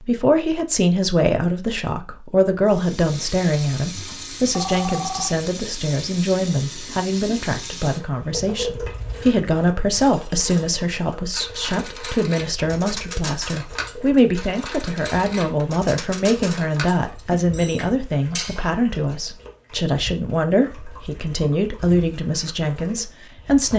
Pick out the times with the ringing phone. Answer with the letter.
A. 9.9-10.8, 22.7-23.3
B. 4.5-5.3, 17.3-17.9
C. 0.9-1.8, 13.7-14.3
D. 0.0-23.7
B.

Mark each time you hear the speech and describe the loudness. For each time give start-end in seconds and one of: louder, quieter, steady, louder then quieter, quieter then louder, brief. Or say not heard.
0.0-23.7 steady.